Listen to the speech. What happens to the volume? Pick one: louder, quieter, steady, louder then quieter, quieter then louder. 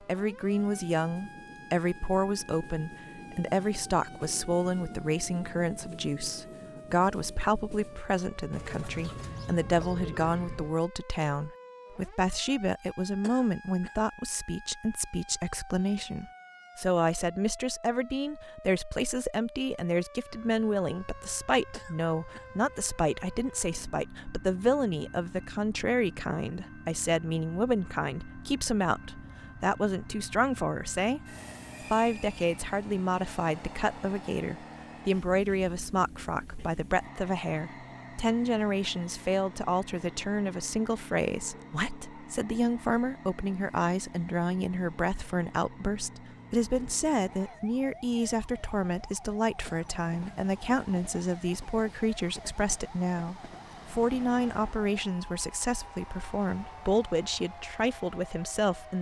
steady.